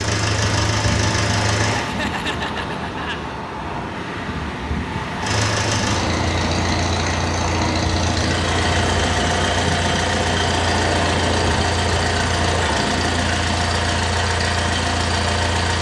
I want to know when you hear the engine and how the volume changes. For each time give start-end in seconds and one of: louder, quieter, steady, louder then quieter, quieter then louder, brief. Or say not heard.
0.0-1.9 brief
5.2-15.7 steady.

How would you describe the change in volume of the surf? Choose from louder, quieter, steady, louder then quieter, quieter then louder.
steady.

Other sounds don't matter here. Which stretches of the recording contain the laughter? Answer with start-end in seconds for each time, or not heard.
1.6-3.2.